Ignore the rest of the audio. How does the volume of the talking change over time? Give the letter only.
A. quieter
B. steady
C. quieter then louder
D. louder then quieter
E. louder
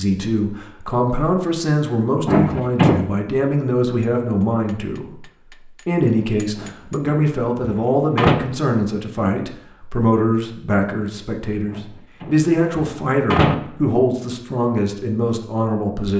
B.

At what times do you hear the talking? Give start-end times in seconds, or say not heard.
0.0-16.1.